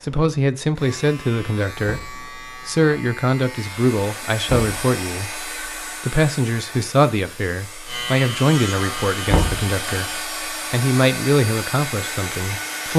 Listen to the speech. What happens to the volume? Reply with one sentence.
The volume of the speech stays about the same.